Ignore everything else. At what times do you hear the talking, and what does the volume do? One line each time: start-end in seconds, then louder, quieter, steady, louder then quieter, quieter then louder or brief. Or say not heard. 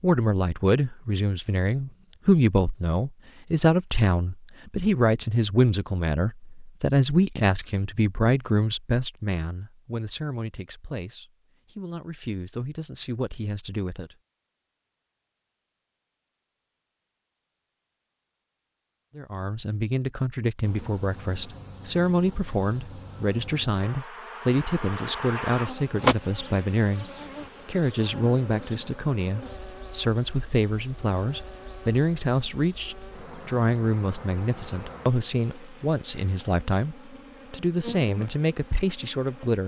0.0-14.1 quieter
19.1-39.6 steady.